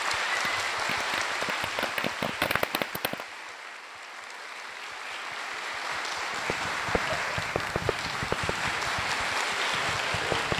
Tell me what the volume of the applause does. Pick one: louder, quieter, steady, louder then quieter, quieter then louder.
quieter then louder.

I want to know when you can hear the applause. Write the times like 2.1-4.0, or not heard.
0.0-10.5.